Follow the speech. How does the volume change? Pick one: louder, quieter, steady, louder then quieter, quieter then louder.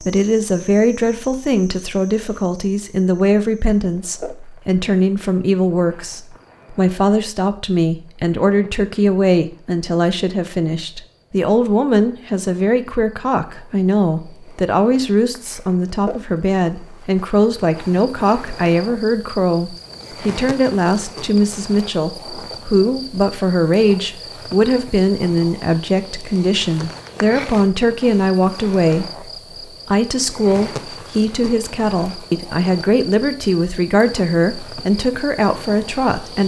steady.